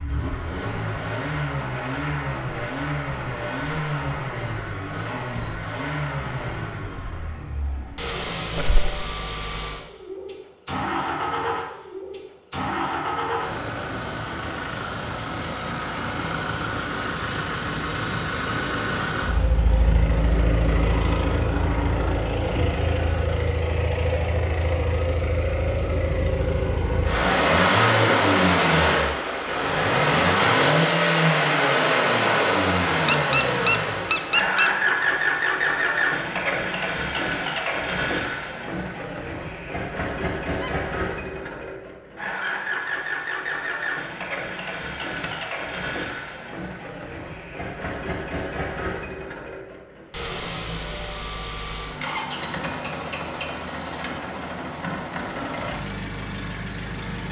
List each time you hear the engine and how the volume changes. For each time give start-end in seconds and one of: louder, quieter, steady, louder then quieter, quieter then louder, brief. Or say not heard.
0.0-57.2 louder then quieter.